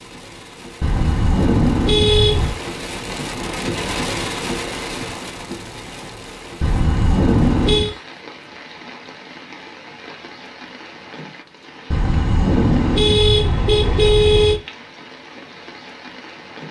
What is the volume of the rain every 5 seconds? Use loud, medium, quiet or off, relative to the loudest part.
loud, medium, medium, medium.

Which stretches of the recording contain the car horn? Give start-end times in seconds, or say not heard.
0.8-2.5, 6.6-8.0, 11.9-14.6.